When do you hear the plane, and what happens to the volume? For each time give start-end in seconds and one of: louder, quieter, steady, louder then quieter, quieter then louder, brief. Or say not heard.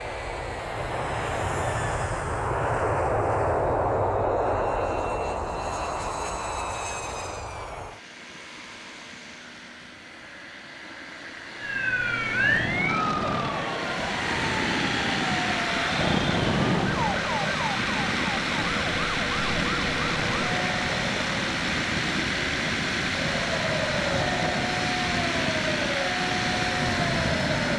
0.0-27.7 quieter then louder.